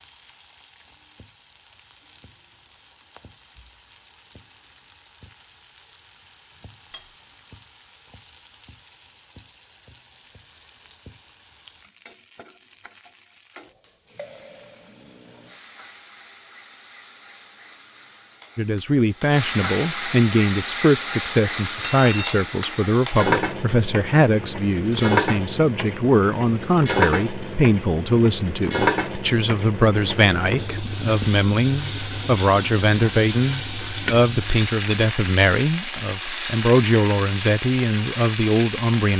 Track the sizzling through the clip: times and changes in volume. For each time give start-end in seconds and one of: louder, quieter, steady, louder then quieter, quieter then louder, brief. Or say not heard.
0.0-39.1 louder.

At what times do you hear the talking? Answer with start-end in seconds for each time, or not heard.
18.6-39.1.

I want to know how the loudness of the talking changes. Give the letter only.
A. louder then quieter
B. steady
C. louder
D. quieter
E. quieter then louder
B.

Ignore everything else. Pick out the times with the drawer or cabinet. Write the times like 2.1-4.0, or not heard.
not heard.